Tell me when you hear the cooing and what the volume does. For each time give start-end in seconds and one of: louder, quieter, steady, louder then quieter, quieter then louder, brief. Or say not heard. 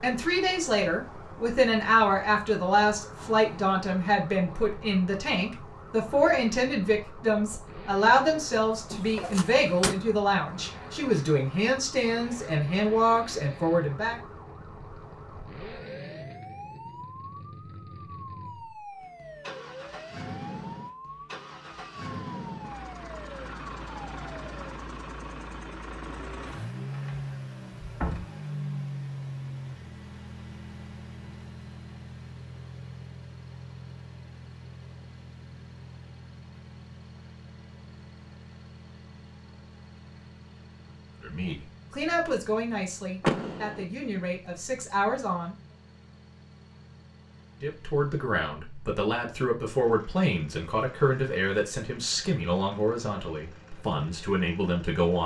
not heard.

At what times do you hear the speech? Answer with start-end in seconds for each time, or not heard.
0.0-14.2, 41.2-45.5, 47.6-55.2.